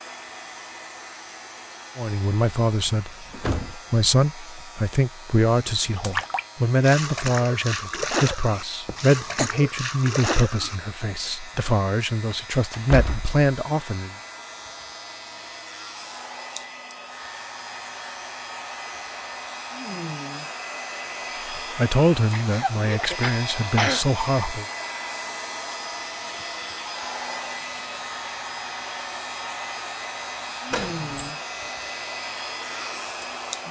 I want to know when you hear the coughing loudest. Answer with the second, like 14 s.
24 s.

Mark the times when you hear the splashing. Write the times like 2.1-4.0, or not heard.
5.7-10.8.